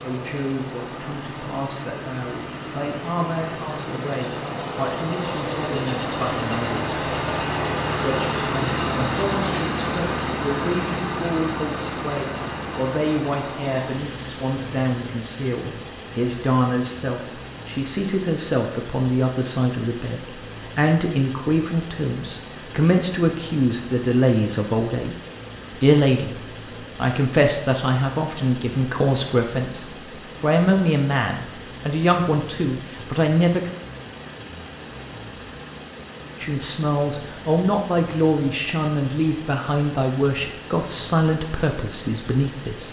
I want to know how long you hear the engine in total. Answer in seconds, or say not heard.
43 s.